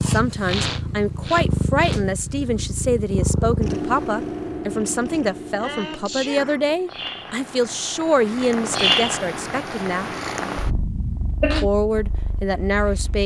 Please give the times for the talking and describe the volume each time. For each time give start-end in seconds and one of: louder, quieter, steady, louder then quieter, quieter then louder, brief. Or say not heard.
0.0-10.1 steady
11.6-13.2 brief.